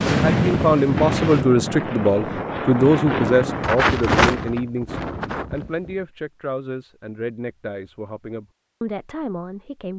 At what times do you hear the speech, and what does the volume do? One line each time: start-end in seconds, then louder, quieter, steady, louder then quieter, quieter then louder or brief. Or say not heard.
0.0-9.9 quieter.